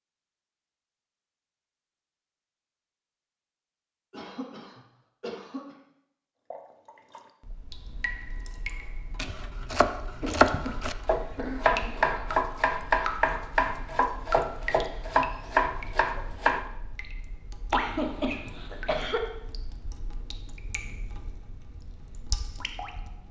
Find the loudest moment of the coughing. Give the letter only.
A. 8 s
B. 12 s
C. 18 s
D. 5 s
C.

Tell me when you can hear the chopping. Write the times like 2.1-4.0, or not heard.
9.2-16.6.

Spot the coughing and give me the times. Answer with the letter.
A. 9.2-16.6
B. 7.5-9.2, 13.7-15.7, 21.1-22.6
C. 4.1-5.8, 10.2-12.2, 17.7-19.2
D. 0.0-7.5
C.